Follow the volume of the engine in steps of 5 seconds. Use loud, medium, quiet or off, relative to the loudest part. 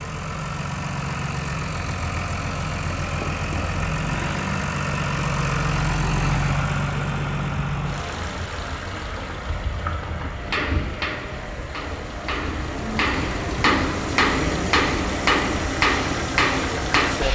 loud, loud, medium, loud.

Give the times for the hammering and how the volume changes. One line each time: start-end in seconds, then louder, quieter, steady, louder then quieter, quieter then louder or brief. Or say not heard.
10.3-17.3 louder.